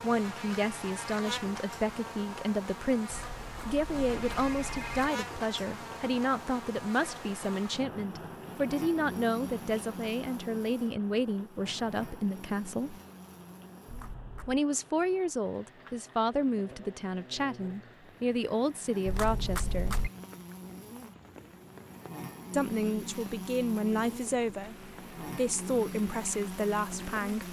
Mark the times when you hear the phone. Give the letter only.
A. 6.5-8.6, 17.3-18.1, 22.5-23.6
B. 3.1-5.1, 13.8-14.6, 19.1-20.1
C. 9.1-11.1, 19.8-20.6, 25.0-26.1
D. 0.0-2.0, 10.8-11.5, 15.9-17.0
B.